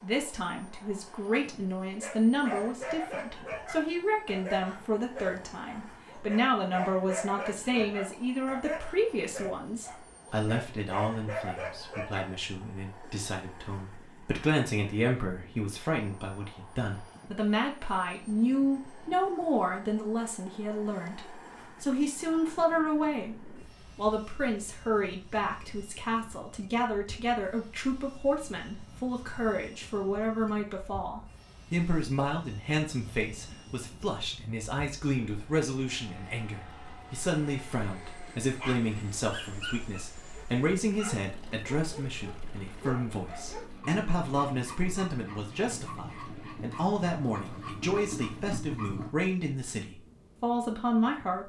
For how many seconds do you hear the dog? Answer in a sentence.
The dog can be heard for 21 seconds in total.